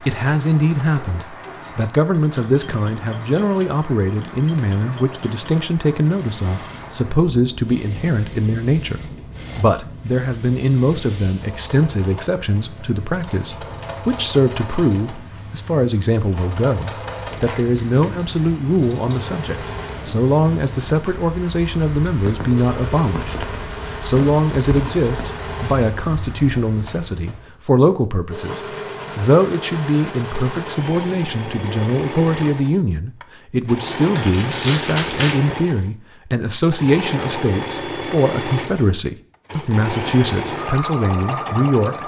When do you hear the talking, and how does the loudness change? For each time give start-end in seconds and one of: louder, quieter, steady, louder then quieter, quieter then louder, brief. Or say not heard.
0.0-42.0 steady.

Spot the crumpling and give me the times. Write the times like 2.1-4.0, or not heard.
17.3-18.5, 34.1-35.4.